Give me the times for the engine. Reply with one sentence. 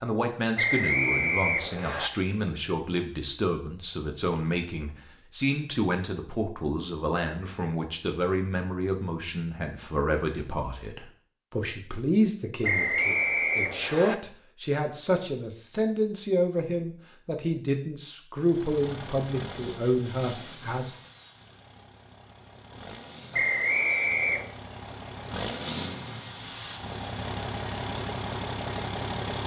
You can hear the engine from 18.4 to 29.4 s.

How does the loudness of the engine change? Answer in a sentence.
The volume of the engine goes down, then up.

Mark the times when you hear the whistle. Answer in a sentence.
You can hear the whistle from 0.6 to 2.1 s, from 12.6 to 14.2 s and from 23.3 to 24.5 s.